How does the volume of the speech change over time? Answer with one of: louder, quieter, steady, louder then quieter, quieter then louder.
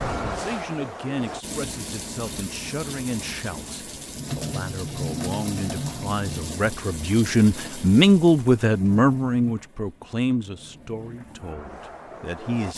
louder then quieter.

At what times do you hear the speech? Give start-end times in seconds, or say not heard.
0.1-12.7.